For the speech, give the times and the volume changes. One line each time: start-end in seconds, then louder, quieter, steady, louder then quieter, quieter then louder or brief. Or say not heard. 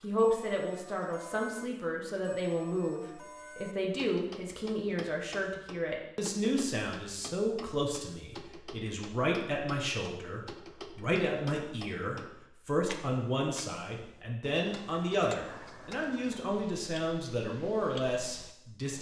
0.0-18.9 steady.